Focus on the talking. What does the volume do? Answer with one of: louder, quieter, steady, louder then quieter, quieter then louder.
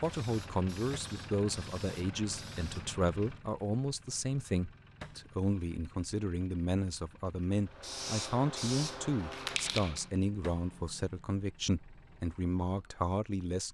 steady.